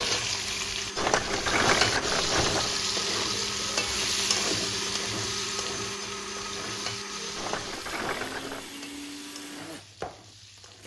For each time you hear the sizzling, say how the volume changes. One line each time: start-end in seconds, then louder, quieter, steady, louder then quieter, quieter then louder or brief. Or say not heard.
0.0-10.8 quieter.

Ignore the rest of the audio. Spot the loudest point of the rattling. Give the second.
2 s.